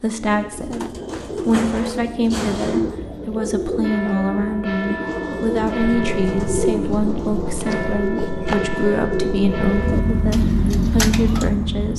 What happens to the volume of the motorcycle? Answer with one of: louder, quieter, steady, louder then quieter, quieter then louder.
louder.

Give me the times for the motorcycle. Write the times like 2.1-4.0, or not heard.
5.8-11.9.